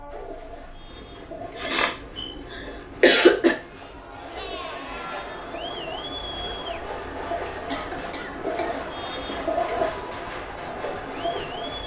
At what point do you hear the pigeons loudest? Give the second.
10 s.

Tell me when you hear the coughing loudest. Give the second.
3 s.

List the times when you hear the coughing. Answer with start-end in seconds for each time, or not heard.
1.6-3.5, 7.3-8.8.